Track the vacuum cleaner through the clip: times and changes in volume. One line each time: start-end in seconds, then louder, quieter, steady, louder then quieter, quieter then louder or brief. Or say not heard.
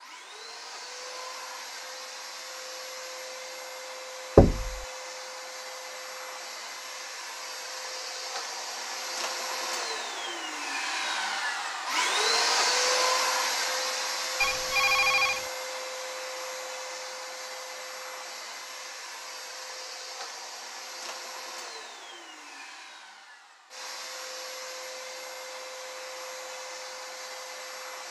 0.0-28.0 louder then quieter.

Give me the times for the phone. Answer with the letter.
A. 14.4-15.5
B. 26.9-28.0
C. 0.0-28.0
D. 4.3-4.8
A.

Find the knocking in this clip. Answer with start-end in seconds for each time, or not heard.
4.3-4.8.